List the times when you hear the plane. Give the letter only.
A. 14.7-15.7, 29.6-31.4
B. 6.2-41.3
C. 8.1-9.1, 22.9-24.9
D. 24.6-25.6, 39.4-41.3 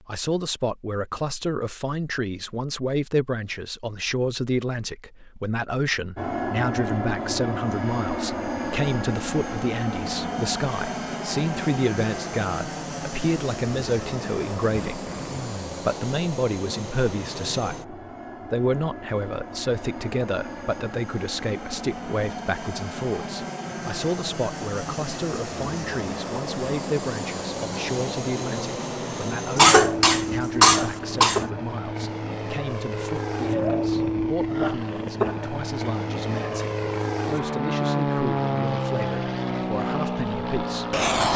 B.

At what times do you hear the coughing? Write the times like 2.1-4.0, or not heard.
14.7-15.7, 29.6-31.4.